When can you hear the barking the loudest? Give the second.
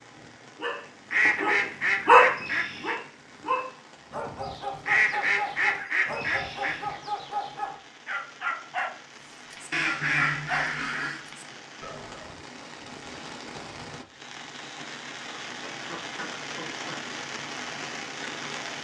2 s.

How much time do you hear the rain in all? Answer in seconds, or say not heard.
19 s.